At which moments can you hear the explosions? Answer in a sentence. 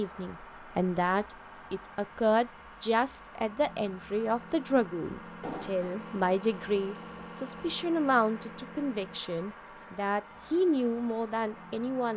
You can hear the explosions from 5.4 to 6.0 s.